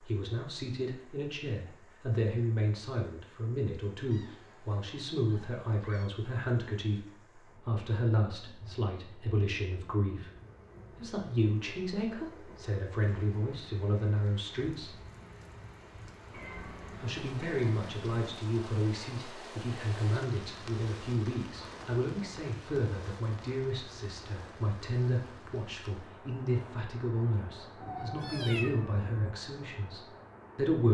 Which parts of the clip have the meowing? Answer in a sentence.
You can hear the meowing from 4.1 to 6.1 s, from 16.3 to 18.2 s and from 27.8 to 29.4 s.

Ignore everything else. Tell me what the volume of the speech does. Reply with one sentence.
The loudness of the speech stays about the same.